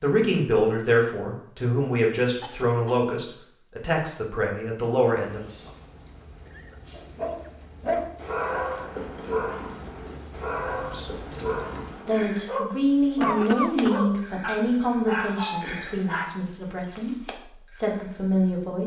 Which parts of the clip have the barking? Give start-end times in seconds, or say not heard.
6.9-16.3.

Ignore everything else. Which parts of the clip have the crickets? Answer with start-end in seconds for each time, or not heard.
5.2-18.5.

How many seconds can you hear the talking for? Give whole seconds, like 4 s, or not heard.
13 s.